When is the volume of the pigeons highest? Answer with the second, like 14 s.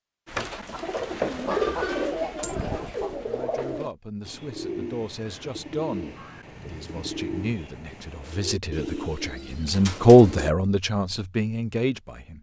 2 s.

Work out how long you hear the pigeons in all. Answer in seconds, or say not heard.
10 s.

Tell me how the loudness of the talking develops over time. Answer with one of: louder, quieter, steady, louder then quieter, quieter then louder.
louder then quieter.